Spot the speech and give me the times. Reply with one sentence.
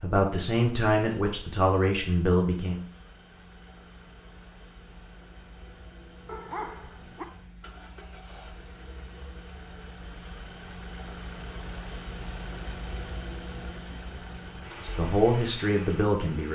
You can hear the speech from 0.0 to 2.8 s and from 14.8 to 16.5 s.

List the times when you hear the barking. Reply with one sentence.
The barking can be heard from 6.2 to 7.2 s.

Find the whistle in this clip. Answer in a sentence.
The whistle can't be heard in this clip.